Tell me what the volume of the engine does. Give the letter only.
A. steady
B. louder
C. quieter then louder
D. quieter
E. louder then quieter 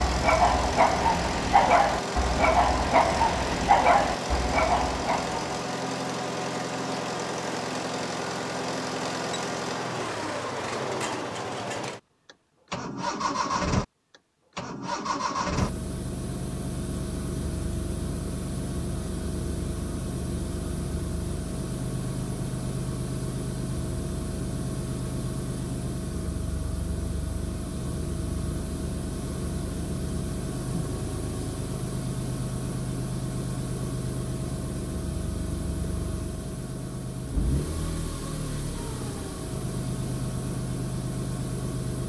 A.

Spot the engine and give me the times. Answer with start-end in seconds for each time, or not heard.
0.0-42.0.